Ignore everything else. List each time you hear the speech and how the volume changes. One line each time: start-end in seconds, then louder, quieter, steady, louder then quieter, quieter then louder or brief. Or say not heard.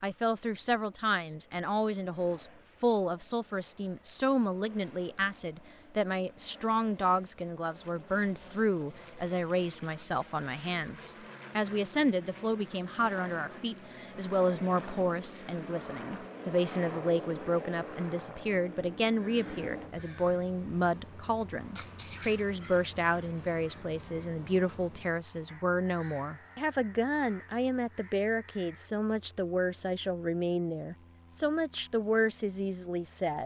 0.0-33.4 steady.